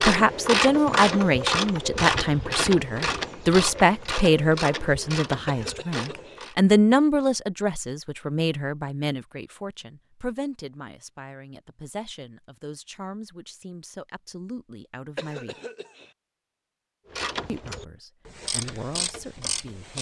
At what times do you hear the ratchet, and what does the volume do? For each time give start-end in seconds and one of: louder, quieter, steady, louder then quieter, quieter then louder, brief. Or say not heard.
0.0-6.5 quieter
17.1-19.9 brief.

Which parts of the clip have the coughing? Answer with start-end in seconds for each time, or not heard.
5.5-6.4, 15.2-16.1.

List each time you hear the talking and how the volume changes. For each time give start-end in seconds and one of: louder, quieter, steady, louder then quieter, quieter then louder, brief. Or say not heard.
0.0-15.6 quieter
17.4-19.9 brief.